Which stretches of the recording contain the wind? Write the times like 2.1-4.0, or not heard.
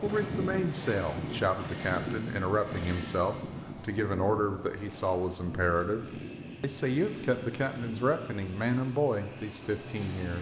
0.0-10.3.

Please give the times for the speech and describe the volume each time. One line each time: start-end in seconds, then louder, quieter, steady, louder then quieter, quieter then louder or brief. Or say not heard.
0.0-10.3 steady.